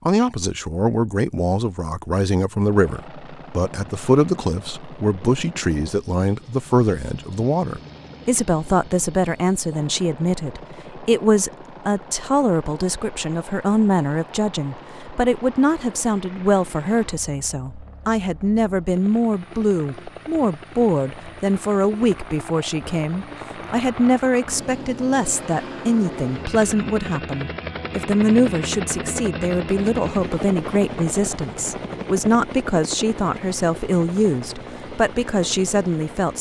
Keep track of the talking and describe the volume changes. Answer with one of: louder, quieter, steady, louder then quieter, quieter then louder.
steady.